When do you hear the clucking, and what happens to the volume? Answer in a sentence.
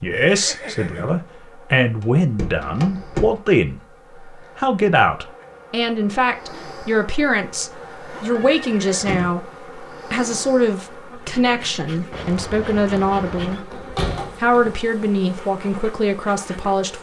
The clucking can't be heard in this clip.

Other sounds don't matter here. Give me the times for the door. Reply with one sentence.
The door can be heard from 2.0 to 3.4 s, from 8.3 to 9.3 s and from 13.6 to 14.7 s.